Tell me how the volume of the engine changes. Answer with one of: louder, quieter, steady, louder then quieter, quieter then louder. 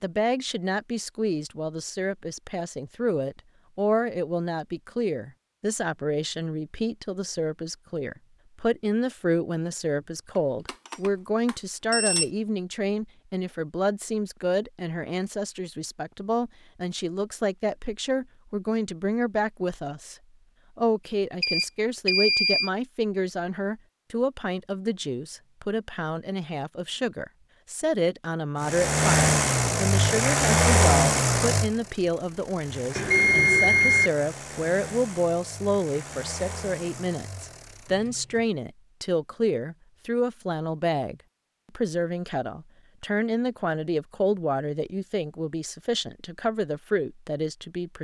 quieter.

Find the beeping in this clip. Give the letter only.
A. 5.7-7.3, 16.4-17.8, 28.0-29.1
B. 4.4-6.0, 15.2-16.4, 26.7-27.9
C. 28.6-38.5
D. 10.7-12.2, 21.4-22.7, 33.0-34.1
D.